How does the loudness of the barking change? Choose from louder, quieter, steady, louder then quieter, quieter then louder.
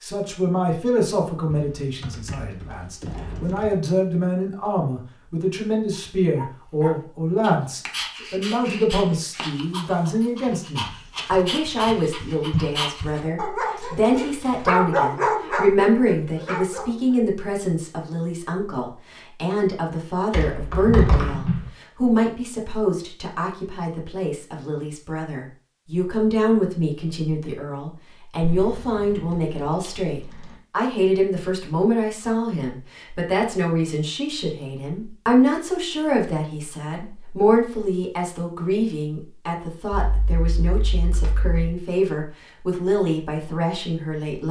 louder.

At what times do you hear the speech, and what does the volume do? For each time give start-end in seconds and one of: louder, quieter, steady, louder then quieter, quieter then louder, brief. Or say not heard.
0.0-44.4 steady.